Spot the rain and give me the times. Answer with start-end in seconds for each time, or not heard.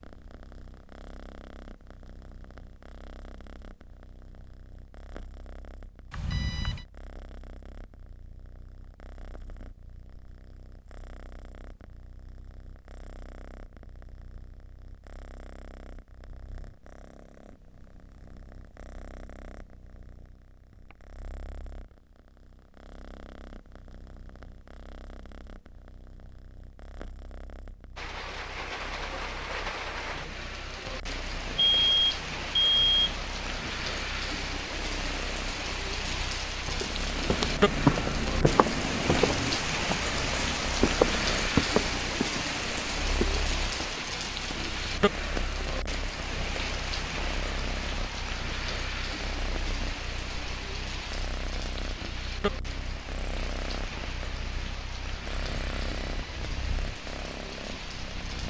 27.9-58.4.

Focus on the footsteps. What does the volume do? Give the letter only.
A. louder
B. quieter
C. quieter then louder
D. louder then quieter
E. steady
B.